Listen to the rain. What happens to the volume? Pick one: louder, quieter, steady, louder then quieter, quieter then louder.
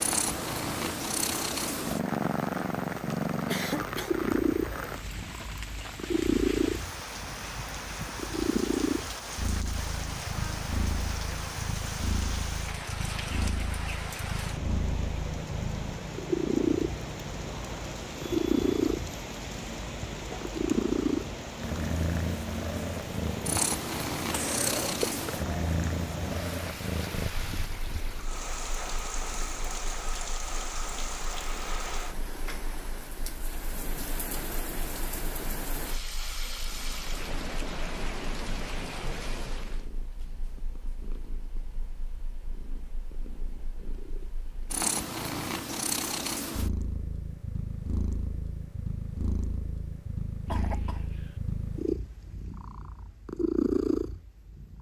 steady.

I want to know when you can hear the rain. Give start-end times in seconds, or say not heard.
0.0-39.9.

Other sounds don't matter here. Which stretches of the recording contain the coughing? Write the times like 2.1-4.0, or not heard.
3.5-4.2, 24.3-25.2, 50.5-51.4.